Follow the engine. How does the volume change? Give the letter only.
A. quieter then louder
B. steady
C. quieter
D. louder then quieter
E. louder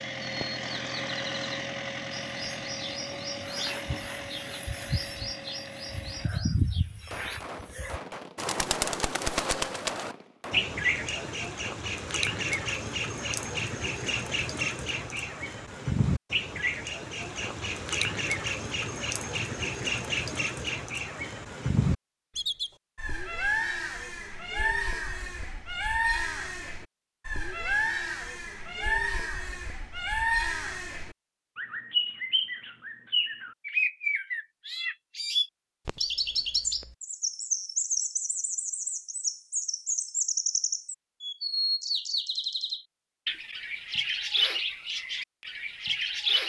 C.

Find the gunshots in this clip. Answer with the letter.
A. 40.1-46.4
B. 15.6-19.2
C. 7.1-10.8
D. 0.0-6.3
C.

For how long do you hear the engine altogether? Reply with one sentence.
The engine can be heard for 6 seconds in total.